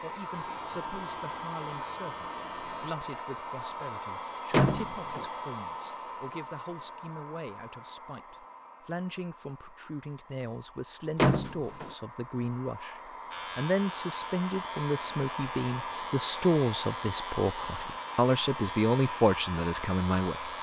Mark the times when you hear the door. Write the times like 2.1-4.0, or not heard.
4.5-5.2, 11.2-11.9.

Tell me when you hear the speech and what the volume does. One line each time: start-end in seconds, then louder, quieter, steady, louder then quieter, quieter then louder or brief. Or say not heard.
0.0-20.5 louder.